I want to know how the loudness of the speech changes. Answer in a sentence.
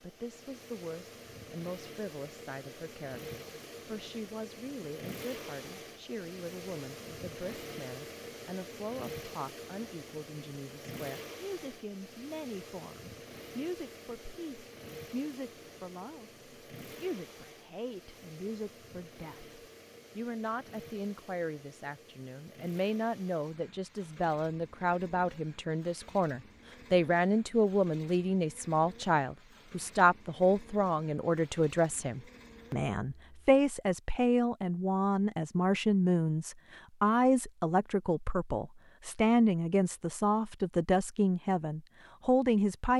The loudness of the speech goes up.